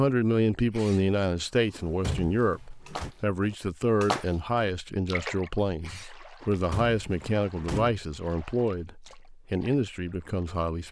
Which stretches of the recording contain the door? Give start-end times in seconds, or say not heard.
1.7-3.1, 6.4-8.0.